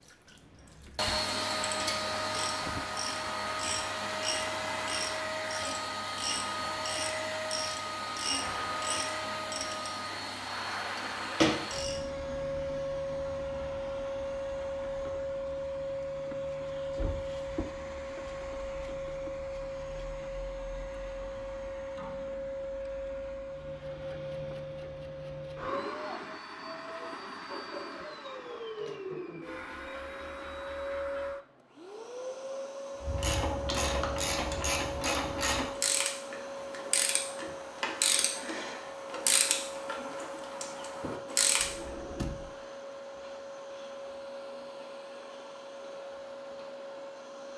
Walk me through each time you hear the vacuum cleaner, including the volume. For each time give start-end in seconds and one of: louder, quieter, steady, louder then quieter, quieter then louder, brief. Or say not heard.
0.0-47.5 quieter.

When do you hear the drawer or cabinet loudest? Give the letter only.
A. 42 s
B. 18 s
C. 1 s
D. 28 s
A.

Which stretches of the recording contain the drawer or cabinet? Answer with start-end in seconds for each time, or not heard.
0.2-1.1, 16.9-17.6, 41.6-42.5.